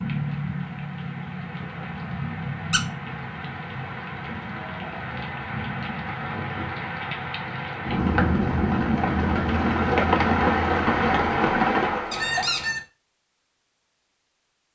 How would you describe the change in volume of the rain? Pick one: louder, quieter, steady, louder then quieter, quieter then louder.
louder.